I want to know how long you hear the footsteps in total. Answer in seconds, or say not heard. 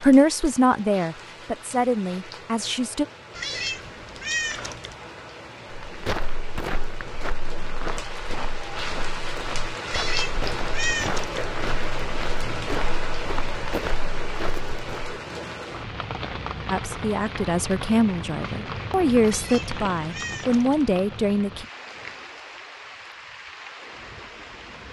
9 s.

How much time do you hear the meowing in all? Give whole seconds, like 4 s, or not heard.
5 s.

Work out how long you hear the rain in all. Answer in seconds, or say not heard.
25 s.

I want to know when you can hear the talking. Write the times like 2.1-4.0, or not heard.
0.0-3.0, 16.7-21.6.